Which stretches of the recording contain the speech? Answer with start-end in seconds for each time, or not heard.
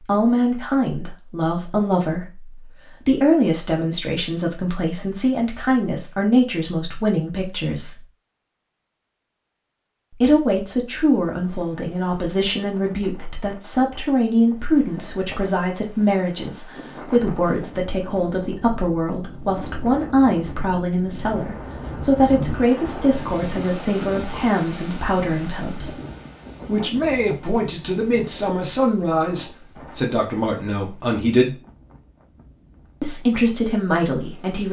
0.0-8.1, 10.1-25.9, 26.6-31.6, 33.0-34.6.